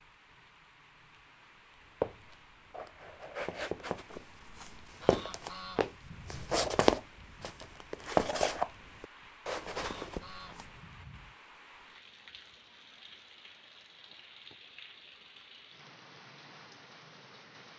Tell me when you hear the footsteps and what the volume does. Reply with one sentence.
The footsteps can be heard from 2.0 to 10.7 s, getting louder then quieter.